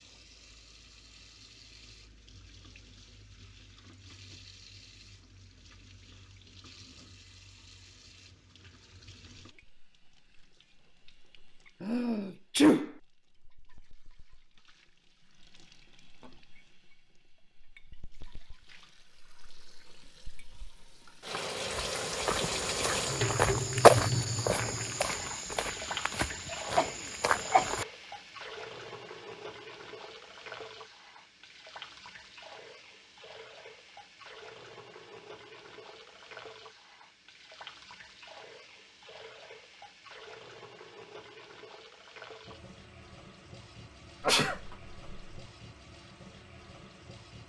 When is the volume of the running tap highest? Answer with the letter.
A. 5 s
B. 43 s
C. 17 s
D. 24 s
D.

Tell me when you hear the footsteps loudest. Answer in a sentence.
The loudest moment of the footsteps is at 24 seconds.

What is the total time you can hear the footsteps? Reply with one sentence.
You can hear the footsteps for 6 seconds altogether.